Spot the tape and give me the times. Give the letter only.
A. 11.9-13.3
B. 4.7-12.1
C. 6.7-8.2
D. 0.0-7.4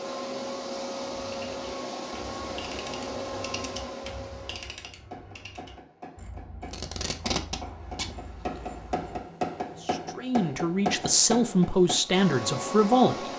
C.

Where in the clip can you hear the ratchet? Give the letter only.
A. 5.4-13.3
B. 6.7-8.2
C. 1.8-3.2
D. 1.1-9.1
D.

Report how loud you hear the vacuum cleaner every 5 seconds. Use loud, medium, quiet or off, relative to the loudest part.
loud, off, loud.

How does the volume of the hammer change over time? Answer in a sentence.
The volume of the hammer goes up.